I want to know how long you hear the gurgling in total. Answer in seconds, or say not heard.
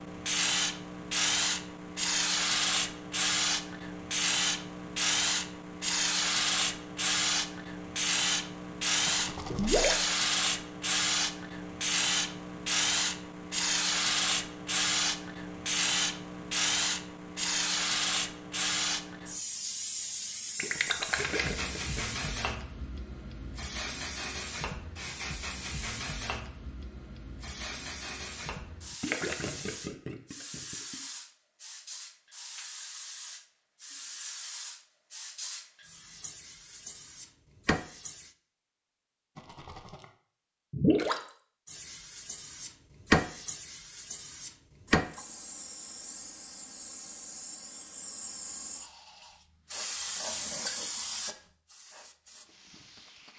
5 s.